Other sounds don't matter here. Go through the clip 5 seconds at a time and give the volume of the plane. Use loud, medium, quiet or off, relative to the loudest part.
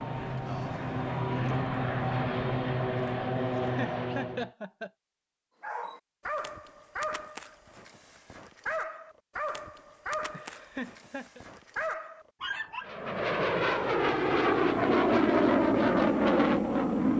medium, off, loud, loud.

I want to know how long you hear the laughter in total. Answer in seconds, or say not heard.
3 s.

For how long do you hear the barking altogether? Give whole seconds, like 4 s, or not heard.
7 s.